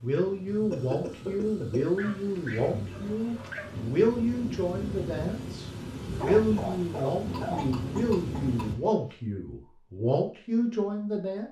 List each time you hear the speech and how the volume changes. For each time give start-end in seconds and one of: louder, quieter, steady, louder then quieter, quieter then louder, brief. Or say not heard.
0.0-11.4 steady.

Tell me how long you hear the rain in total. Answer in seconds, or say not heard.
9 s.